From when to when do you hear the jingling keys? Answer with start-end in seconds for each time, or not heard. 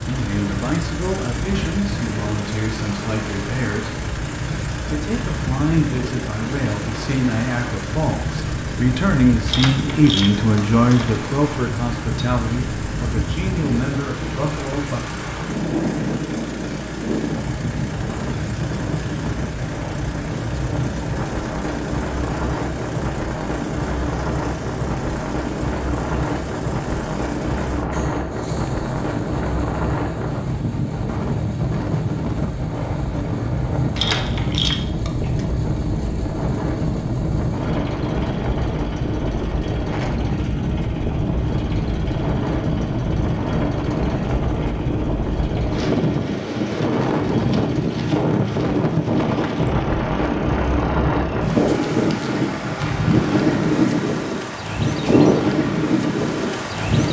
9.4-11.2, 34.0-35.5.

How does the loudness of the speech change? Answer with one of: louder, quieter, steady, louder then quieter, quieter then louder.
louder then quieter.